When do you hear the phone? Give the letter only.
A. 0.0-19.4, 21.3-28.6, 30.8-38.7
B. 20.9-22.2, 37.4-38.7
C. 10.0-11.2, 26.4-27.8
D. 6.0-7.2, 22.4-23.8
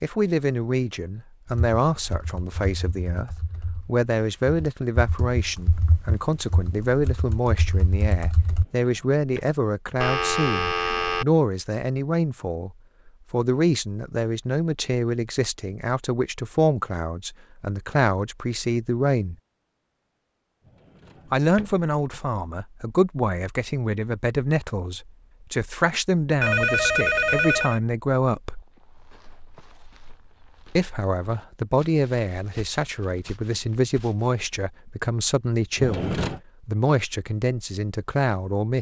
C.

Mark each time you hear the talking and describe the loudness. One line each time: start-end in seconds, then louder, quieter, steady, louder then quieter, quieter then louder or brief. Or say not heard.
0.0-19.4 steady
21.3-28.6 steady
30.8-38.7 steady.